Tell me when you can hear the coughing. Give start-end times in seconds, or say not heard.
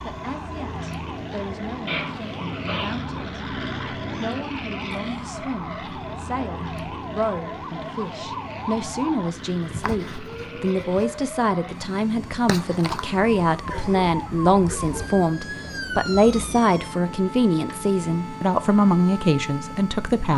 1.9-3.0, 13.7-15.2.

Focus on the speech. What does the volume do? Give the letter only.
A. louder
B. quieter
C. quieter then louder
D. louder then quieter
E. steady
A.